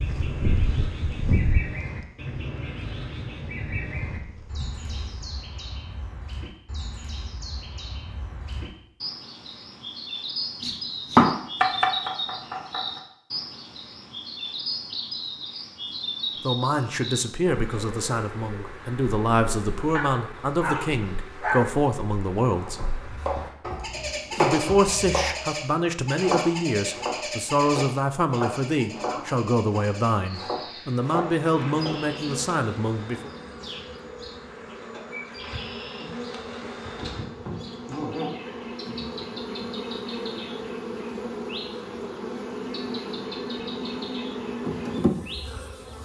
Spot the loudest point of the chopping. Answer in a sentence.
The volume of the chopping peaks at 11 seconds.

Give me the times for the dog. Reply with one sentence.
The dog can be heard from 19.9 to 21.9 s.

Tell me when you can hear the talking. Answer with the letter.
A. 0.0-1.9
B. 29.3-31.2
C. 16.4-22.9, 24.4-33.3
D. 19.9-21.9
C.